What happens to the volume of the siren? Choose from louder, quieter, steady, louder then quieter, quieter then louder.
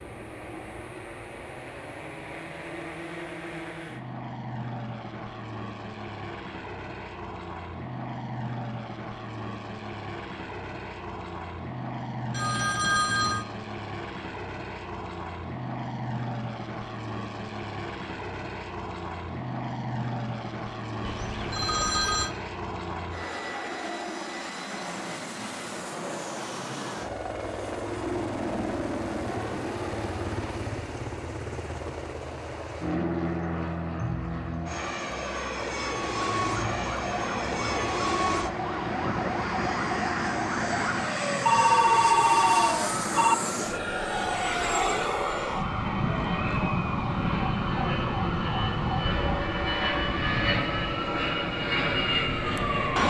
steady.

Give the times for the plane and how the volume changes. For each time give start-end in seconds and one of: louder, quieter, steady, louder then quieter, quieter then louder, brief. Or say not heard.
0.0-53.0 louder.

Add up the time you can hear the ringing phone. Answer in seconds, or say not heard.
4 s.